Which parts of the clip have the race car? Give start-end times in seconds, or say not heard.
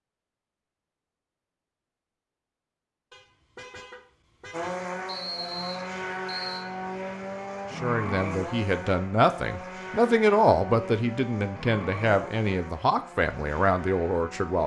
4.5-14.6.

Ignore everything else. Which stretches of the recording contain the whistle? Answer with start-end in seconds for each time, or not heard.
5.0-6.7.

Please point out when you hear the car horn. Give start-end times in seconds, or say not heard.
3.1-4.9.